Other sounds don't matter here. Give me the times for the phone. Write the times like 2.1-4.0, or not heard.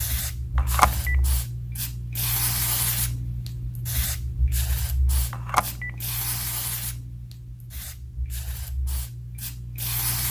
0.6-1.1, 5.3-5.9.